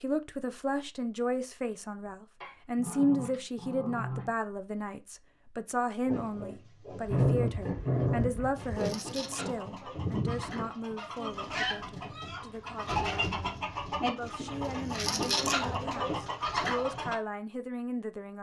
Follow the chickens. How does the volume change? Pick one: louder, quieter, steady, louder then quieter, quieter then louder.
louder.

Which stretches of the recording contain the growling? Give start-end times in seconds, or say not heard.
2.4-4.3, 7.0-8.7, 14.4-15.9.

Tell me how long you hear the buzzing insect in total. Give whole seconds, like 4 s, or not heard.
not heard.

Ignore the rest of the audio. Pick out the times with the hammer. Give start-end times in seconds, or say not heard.
not heard.